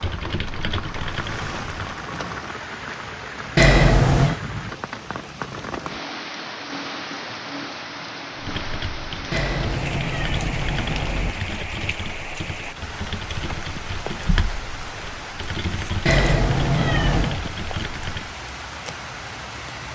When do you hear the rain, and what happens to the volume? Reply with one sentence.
The rain can be heard from 0.0 to 19.9 s, at a steady volume.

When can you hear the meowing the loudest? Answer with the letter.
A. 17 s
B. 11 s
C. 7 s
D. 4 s
D.